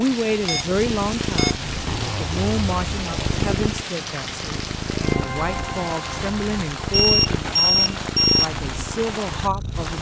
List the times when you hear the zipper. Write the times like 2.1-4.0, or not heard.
1.8-3.5.